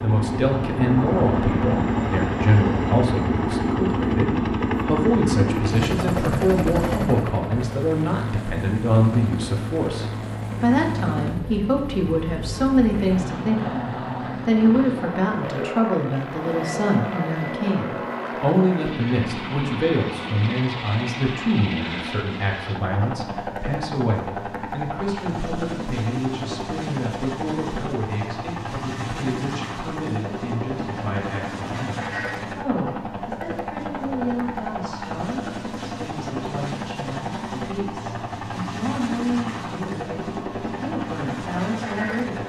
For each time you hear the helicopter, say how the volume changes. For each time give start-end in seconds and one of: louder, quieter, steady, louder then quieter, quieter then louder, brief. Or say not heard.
0.0-42.4 quieter.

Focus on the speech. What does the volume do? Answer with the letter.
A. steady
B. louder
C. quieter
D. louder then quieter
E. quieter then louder
C.